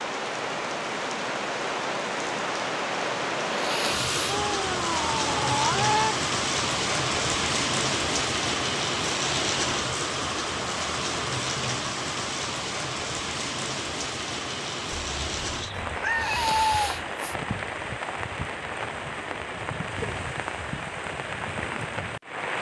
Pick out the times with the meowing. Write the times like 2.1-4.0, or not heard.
4.2-6.2, 14.9-17.1.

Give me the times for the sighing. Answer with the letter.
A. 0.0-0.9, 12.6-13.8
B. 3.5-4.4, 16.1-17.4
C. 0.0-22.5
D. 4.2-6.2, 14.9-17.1
B.